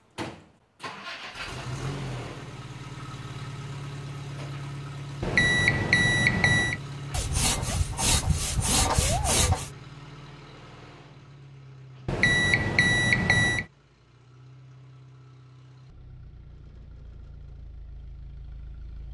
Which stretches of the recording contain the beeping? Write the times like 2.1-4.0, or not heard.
5.2-6.8, 12.1-13.7.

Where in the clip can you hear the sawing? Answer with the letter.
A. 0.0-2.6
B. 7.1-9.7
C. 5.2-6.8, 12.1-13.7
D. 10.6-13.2
B.